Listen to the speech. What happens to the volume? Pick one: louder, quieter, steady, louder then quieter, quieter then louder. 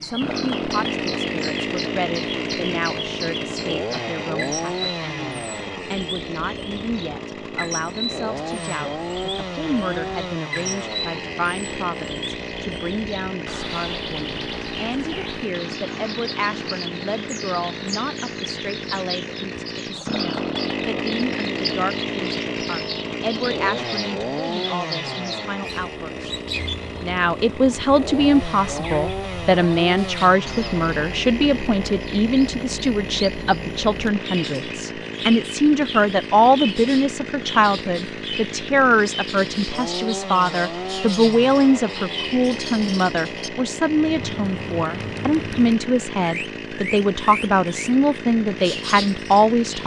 louder.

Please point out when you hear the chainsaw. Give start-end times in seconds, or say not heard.
0.0-49.8.